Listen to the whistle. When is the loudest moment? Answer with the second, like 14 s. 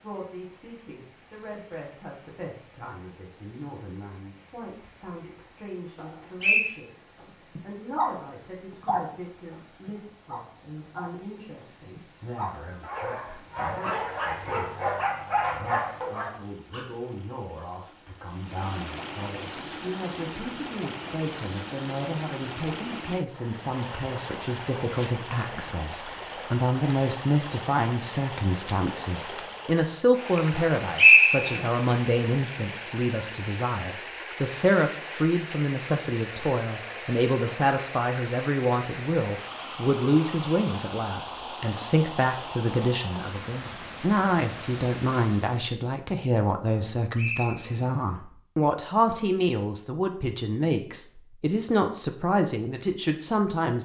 31 s.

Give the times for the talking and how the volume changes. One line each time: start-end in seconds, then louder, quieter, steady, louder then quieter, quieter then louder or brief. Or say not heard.
0.0-53.7 louder.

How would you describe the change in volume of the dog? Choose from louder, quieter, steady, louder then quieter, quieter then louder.
quieter then louder.